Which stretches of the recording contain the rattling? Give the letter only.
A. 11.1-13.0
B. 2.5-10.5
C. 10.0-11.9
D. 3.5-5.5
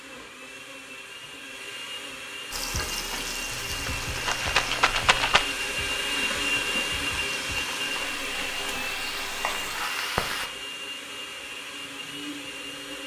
D.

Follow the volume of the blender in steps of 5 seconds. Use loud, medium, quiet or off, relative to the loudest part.
medium, loud, medium.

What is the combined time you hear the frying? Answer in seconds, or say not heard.
8 s.